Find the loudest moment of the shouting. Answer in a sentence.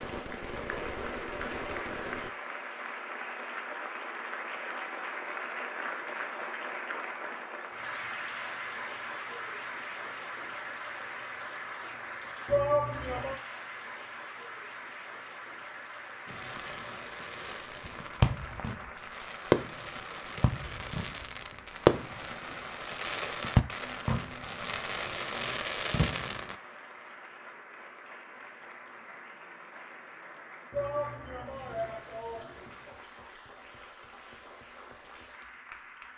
The volume of the shouting peaks at 13 seconds.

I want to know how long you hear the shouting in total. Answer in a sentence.
The shouting can be heard for 3 seconds in total.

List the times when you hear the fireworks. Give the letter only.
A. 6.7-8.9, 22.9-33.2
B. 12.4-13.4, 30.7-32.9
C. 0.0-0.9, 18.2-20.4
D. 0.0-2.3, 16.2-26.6
D.